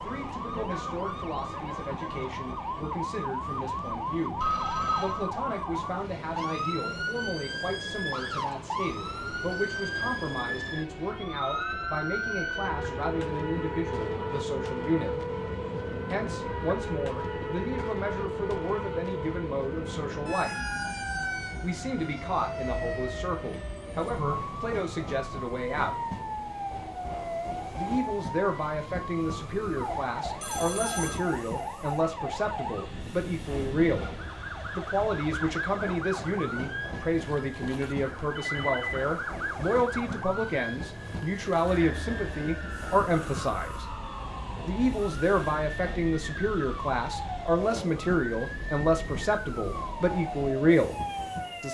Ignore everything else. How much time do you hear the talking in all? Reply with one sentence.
The talking can be heard for 46 seconds in total.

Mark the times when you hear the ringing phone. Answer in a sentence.
You can hear the ringing phone from 4.4 to 5.2 s, from 30.4 to 31.2 s and from 38.4 to 39.0 s.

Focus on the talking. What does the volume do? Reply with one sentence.
The loudness of the talking goes up.